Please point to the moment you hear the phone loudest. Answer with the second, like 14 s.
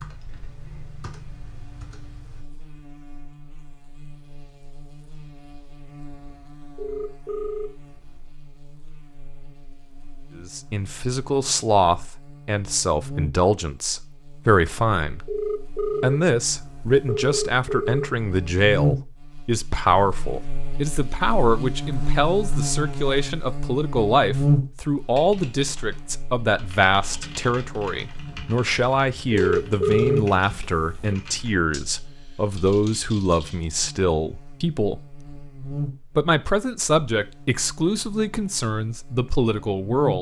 30 s.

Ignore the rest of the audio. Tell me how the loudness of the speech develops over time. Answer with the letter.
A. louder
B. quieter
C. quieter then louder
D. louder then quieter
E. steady
E.